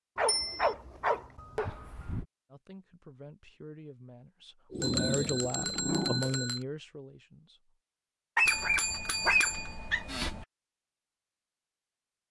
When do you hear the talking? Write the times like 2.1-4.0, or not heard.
2.5-7.8.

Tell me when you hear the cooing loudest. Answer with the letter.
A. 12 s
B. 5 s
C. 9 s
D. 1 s
B.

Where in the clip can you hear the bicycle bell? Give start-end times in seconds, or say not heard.
0.2-0.8, 4.8-6.7, 8.4-10.4.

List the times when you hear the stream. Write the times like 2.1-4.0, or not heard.
not heard.